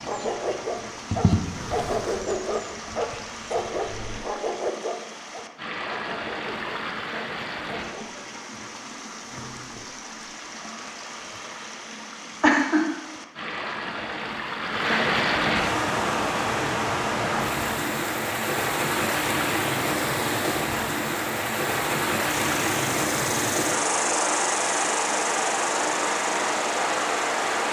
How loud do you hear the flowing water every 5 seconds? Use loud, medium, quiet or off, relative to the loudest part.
quiet, medium, medium, loud, loud, loud.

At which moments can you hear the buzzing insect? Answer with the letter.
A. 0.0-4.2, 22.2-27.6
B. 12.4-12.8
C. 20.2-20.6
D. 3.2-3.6
A.